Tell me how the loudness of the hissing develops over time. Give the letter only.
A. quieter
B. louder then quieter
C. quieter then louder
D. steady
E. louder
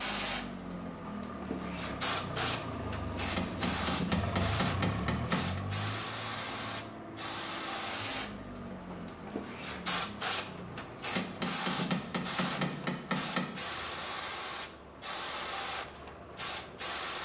D.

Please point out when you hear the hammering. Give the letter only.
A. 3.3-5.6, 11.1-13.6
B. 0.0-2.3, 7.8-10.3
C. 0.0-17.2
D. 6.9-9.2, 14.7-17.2
A.